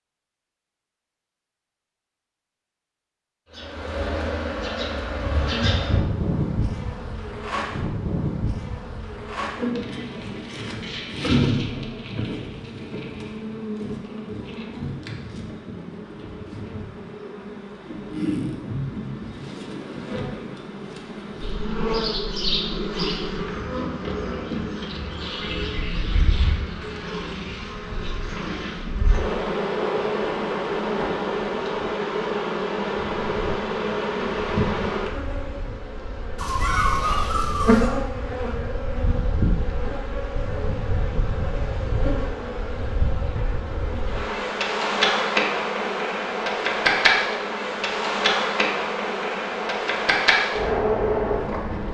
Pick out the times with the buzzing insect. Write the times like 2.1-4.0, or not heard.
3.5-51.8.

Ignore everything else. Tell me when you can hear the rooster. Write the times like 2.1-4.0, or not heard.
not heard.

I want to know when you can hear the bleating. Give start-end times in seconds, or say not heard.
36.4-37.9.